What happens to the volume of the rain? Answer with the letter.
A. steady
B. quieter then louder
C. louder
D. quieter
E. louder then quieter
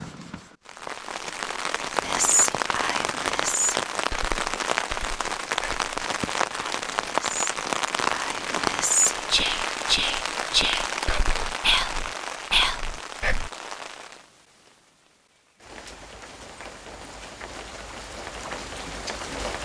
D.